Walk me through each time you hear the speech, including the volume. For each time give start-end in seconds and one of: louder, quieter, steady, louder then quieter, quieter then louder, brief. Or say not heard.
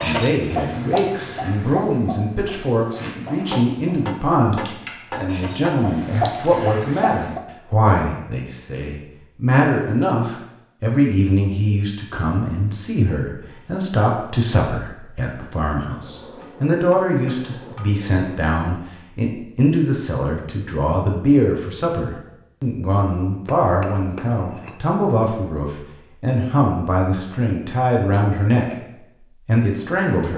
0.0-28.8 steady
29.4-30.3 brief.